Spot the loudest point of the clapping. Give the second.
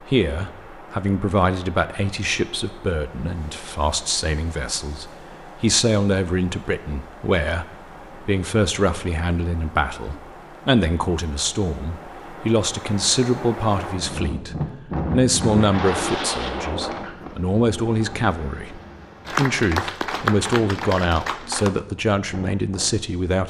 20 s.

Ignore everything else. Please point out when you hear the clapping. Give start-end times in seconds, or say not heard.
19.2-21.8.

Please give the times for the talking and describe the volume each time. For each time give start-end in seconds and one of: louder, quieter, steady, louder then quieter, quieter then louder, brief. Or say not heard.
0.0-23.4 steady.